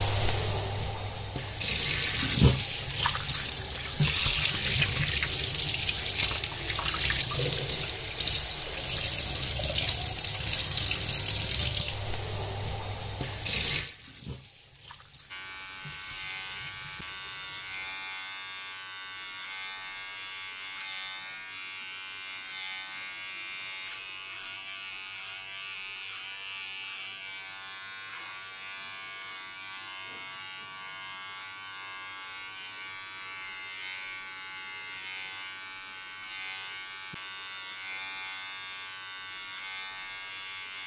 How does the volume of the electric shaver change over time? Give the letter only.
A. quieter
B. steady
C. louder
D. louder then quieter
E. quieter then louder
B.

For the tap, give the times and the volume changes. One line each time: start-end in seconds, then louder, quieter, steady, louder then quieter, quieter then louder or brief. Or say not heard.
0.0-18.0 quieter.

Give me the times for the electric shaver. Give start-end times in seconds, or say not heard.
15.3-40.8.